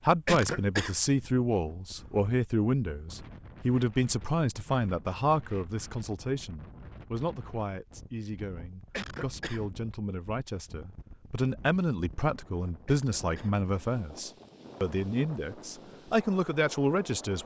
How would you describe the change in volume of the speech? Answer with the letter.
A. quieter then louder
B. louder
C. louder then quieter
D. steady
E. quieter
A.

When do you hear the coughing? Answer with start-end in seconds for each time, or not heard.
0.2-1.0, 8.9-9.7, 12.8-13.6.